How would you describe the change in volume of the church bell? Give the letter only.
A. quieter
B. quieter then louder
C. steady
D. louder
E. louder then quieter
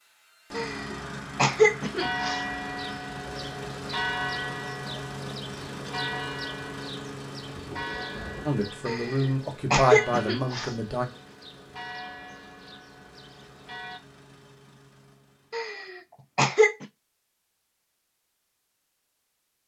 A.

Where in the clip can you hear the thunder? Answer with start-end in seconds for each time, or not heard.
7.5-8.5.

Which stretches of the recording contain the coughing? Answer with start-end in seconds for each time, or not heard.
0.6-2.4, 8.8-10.7, 15.5-16.9.